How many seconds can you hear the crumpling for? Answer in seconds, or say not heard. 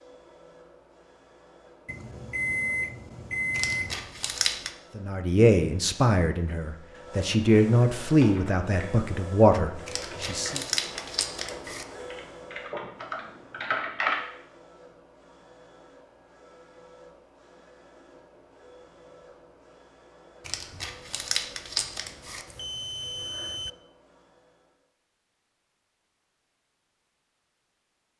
5 s.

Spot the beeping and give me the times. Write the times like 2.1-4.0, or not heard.
1.9-4.1, 22.4-23.7.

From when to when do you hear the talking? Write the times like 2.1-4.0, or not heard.
5.0-10.6.